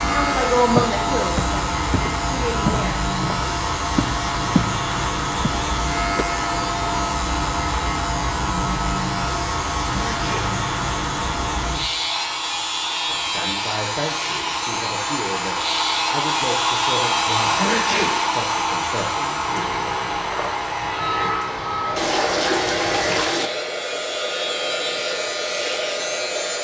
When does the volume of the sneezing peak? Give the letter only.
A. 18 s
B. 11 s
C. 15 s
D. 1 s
A.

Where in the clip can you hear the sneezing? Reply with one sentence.
The sneezing can be heard from 9.9 to 10.6 s and from 17.6 to 18.2 s.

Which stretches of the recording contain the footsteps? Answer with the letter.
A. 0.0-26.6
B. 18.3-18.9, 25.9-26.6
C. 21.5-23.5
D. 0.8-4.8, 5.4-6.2
D.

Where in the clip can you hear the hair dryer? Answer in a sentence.
The hair dryer can be heard from 0.0 to 26.6 s.